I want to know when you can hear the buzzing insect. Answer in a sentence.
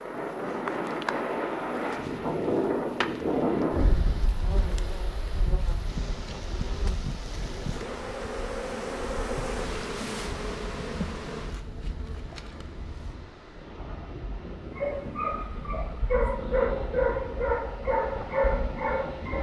The buzzing insect can be heard from 0.0 to 13.3 s.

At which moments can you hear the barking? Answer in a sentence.
The barking can be heard from 14.5 to 19.3 s.